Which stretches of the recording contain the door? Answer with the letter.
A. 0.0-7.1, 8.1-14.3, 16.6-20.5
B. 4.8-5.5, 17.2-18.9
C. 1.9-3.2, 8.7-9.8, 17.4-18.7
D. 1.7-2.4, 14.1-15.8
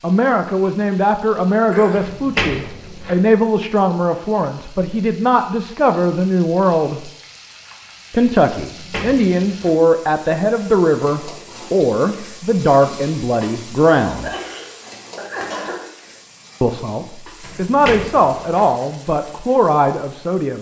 C.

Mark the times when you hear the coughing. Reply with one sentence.
You can hear the coughing from 1.7 to 2.4 s and from 14.1 to 15.8 s.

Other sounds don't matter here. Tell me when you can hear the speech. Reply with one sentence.
The speech can be heard from 0.0 to 7.1 s, from 8.1 to 14.3 s and from 16.6 to 20.5 s.